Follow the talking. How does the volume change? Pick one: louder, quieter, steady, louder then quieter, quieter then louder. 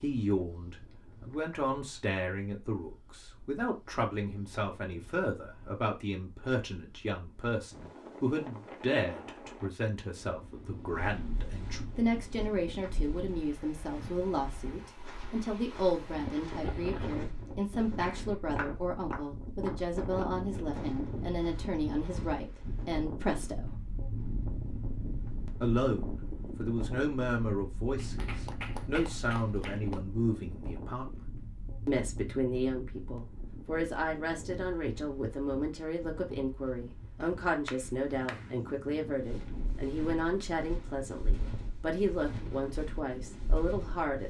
steady.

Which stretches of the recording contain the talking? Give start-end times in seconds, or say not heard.
0.0-23.8, 25.6-44.2.